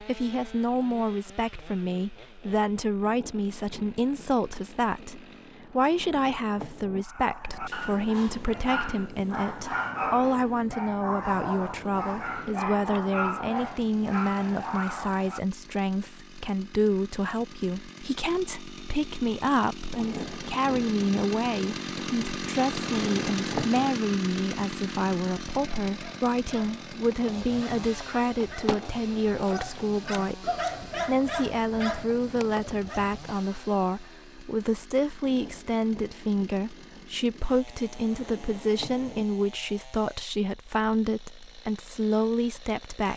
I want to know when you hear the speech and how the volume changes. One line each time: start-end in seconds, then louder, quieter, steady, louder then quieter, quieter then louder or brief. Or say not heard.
0.0-43.1 steady.